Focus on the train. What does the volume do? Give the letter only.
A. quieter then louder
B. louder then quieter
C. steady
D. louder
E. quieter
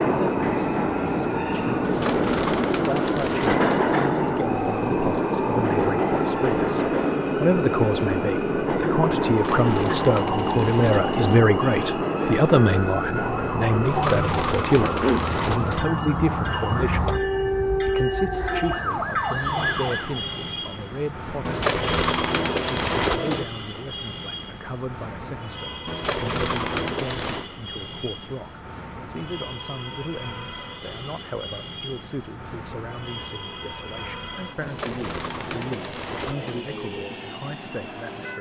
E.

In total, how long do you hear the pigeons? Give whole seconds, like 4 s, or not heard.
12 s.